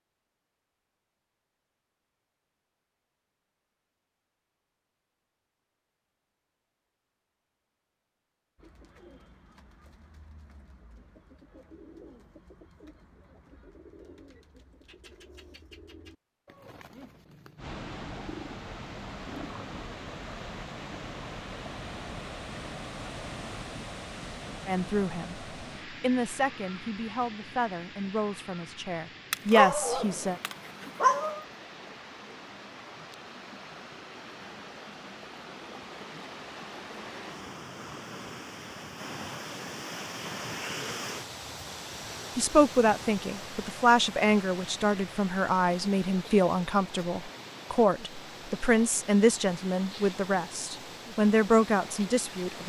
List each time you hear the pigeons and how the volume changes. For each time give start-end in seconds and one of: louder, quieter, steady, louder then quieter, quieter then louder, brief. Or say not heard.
8.6-19.6 louder.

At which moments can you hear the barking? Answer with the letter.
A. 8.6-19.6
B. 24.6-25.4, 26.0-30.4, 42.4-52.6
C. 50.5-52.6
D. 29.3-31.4
D.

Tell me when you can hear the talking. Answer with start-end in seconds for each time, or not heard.
24.6-25.4, 26.0-30.4, 42.4-52.6.